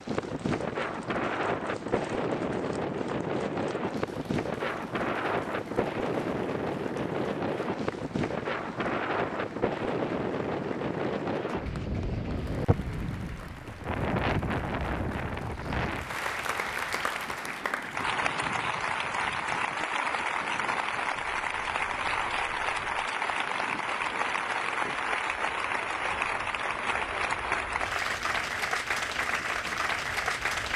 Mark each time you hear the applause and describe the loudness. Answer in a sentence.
The applause can be heard from 0.0 to 30.7 s, getting louder.